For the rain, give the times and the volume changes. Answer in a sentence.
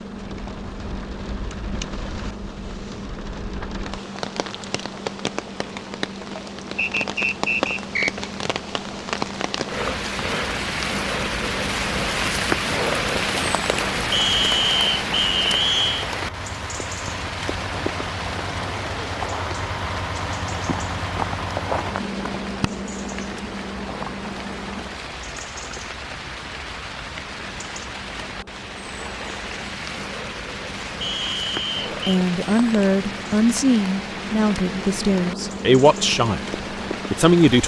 The rain can be heard from 0.0 to 37.6 s, getting louder then quieter.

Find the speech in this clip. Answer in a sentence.
You can hear the speech from 32.0 to 36.5 s and from 37.1 to 37.6 s.